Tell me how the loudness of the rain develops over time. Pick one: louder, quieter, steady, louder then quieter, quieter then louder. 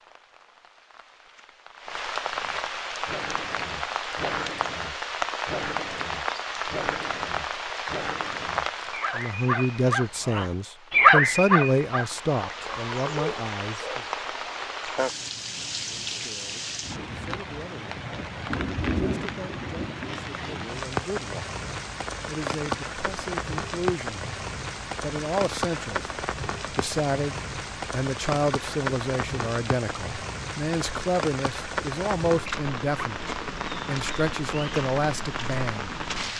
steady.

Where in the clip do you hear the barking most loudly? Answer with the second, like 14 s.
11 s.